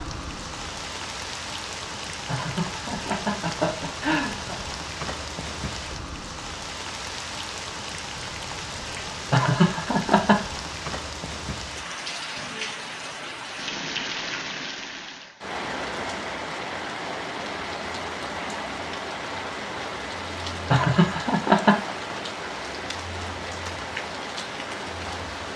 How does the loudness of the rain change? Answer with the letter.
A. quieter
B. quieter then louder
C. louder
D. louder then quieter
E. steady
E.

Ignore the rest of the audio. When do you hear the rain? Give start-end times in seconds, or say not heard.
0.0-25.5.